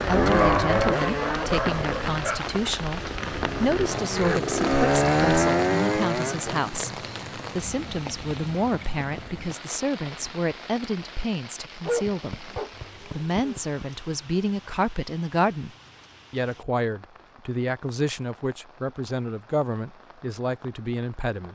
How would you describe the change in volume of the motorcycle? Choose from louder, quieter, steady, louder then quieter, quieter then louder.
quieter then louder.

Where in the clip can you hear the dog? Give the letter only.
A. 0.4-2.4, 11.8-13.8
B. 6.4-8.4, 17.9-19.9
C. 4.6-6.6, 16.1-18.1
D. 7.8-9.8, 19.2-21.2
A.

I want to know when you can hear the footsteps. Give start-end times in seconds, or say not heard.
not heard.